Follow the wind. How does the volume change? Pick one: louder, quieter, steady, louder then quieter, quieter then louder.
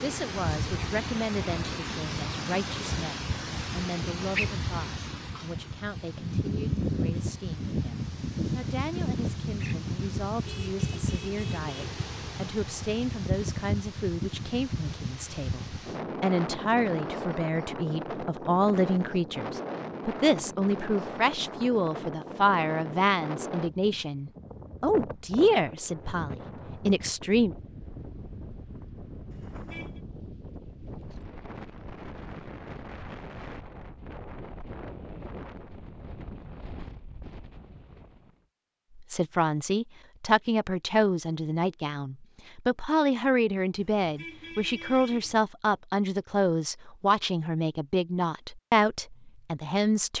quieter.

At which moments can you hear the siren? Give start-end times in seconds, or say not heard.
not heard.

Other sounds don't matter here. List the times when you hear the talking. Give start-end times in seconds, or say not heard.
0.0-27.6, 39.0-50.1.